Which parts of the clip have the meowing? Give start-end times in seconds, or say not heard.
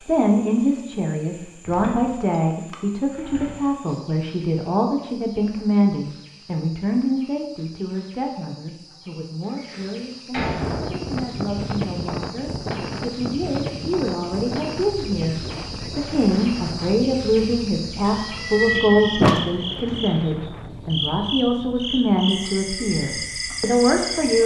18.0-20.0.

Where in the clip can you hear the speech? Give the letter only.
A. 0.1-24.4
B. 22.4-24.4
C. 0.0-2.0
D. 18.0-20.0
A.